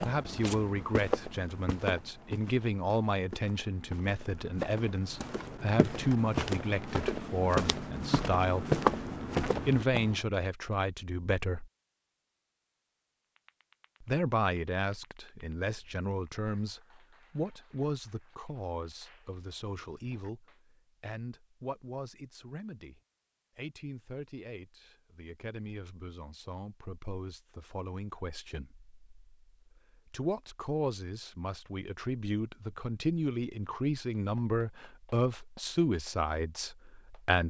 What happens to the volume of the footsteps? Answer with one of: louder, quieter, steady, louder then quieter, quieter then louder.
quieter then louder.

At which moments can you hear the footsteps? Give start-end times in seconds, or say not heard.
0.0-10.2.